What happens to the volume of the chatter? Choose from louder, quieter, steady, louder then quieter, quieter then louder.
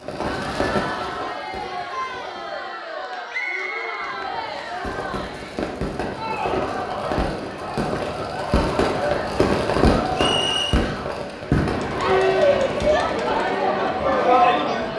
louder.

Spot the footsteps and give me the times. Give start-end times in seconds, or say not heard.
not heard.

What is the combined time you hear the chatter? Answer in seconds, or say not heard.
15 s.